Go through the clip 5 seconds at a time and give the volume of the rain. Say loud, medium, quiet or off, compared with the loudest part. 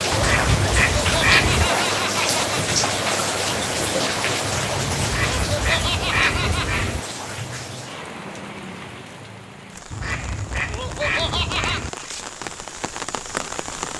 loud, medium, medium.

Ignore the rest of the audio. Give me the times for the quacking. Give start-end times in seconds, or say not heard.
0.1-1.7, 5.0-7.0, 9.9-11.9.